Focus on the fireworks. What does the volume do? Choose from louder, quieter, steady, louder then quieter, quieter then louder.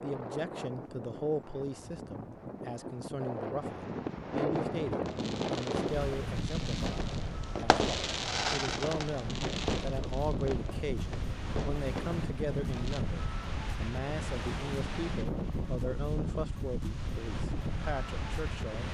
louder then quieter.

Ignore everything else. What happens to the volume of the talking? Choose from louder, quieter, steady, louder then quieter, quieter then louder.
steady.